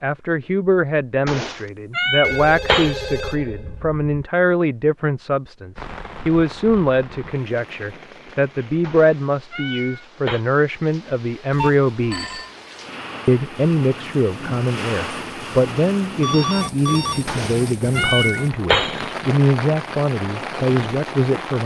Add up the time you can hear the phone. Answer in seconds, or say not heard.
4 s.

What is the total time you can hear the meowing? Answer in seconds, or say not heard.
5 s.